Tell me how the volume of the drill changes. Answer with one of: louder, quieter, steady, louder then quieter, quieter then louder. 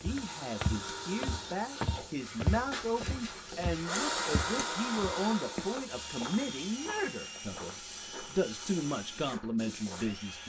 louder then quieter.